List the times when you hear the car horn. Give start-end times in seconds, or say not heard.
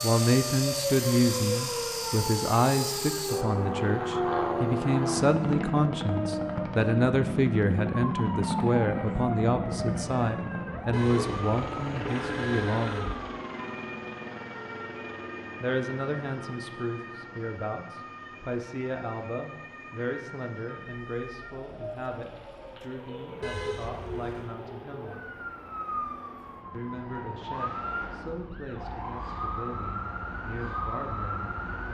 10.9-13.2, 23.4-24.5.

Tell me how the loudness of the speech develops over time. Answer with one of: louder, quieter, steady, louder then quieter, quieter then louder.
quieter.